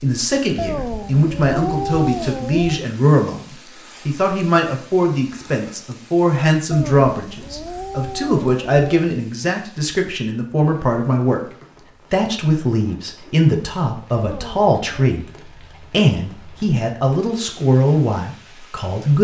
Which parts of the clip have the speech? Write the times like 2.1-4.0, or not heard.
0.0-11.4, 12.1-15.2, 15.9-19.2.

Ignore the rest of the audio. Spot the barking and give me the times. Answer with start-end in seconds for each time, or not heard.
not heard.